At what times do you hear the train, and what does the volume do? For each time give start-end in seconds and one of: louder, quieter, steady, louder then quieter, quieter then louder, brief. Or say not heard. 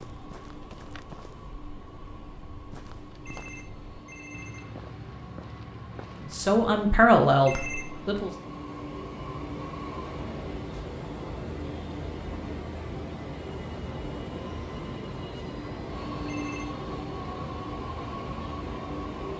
0.0-19.3 louder.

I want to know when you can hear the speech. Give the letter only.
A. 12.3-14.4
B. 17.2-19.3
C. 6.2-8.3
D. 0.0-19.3
C.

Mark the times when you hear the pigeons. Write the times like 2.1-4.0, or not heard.
not heard.